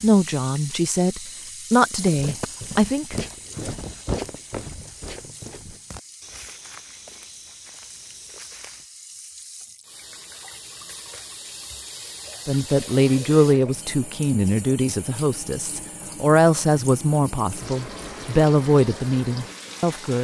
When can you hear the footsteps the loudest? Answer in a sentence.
The loudest moment of the footsteps is at 4 seconds.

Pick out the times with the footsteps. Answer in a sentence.
The footsteps can be heard from 1.9 to 8.9 s.